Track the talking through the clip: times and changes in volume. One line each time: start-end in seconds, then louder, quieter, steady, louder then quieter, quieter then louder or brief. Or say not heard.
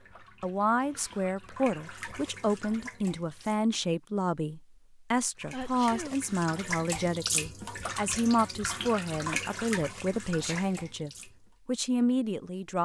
0.4-12.8 steady.